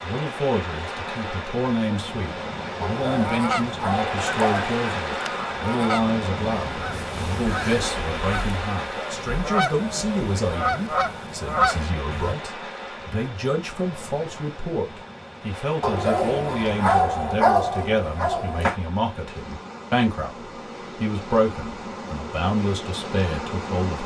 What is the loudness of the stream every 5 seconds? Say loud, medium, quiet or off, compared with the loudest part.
loud, loud, medium, medium, loud.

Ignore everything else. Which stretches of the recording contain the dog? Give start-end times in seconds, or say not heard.
2.8-4.8, 15.8-18.8.